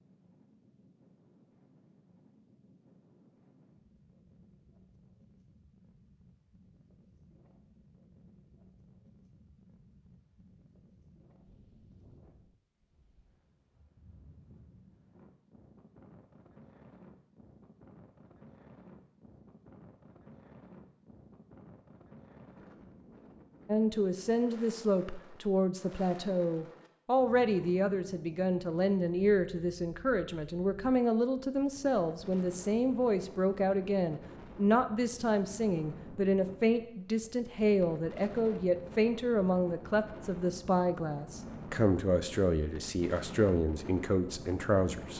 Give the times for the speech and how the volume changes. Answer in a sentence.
You can hear the speech from 23.6 to 45.1 s, at a steady volume.